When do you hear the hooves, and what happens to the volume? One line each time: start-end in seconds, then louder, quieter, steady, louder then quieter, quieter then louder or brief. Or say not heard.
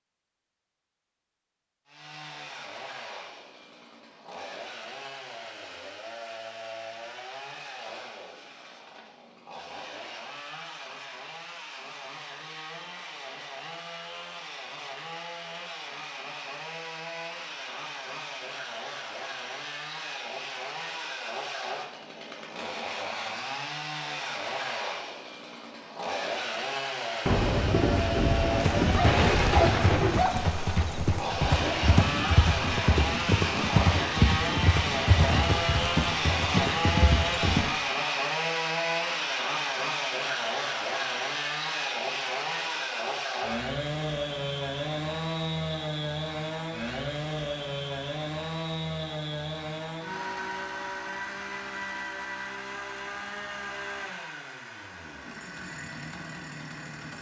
28.5-37.7 steady.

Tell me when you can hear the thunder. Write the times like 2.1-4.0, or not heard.
27.2-30.3.